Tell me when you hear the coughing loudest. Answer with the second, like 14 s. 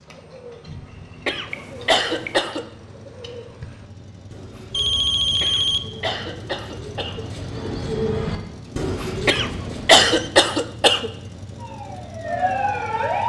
10 s.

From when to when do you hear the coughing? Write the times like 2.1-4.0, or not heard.
1.2-2.6, 5.4-7.2, 9.2-11.1.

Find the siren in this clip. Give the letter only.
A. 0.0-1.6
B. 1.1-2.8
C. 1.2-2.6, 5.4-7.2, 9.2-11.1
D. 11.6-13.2
D.